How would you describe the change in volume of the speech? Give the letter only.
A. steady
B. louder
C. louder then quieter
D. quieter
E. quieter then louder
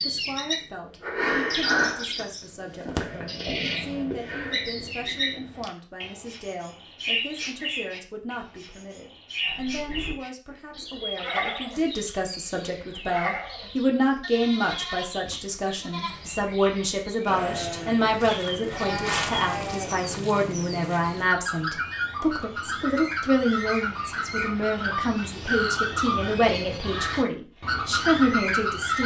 B.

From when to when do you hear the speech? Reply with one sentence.
The speech can be heard from 0.0 to 29.0 s.